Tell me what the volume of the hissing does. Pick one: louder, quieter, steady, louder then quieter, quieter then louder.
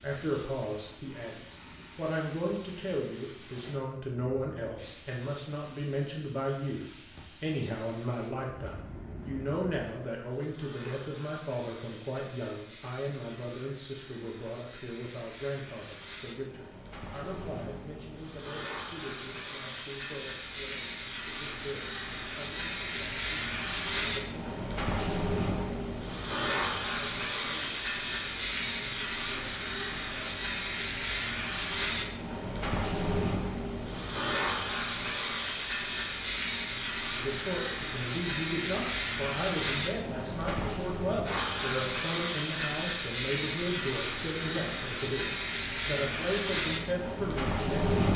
louder.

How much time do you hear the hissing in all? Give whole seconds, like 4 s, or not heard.
48 s.